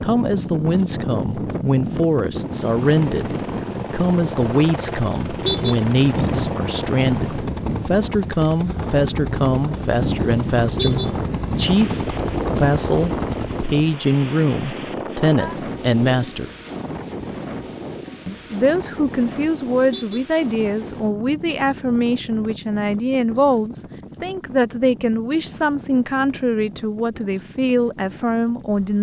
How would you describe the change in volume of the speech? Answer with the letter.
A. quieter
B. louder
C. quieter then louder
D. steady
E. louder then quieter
D.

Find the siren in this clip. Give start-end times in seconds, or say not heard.
not heard.